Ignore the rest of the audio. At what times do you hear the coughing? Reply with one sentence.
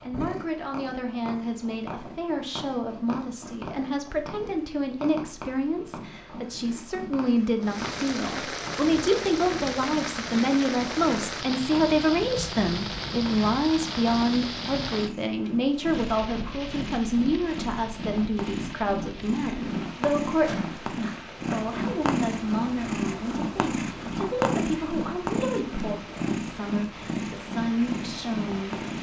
You can't hear the coughing here.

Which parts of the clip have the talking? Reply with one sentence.
You can hear the talking from 0.0 to 28.8 s.